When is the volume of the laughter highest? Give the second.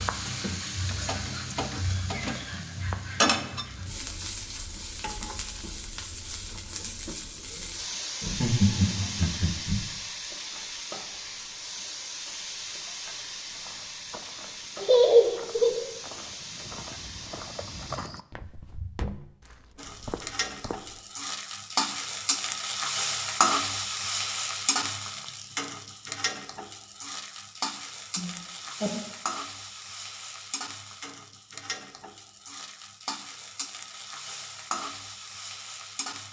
15 s.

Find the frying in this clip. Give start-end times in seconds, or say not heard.
0.0-18.0, 19.8-36.2.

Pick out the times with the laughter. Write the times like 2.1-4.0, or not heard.
8.2-9.8, 14.8-15.8, 28.1-29.0.